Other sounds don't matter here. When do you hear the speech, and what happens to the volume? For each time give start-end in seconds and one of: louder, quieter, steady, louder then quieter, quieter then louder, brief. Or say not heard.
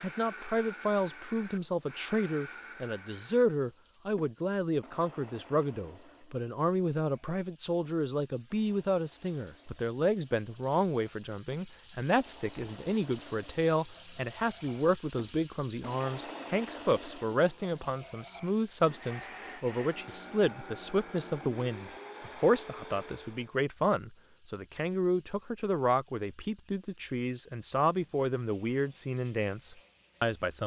0.0-30.6 steady.